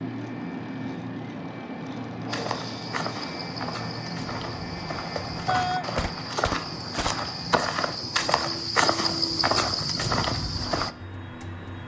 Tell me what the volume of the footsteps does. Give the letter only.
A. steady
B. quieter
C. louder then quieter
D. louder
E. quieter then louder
D.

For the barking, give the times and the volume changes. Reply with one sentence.
The barking can't be heard in this clip.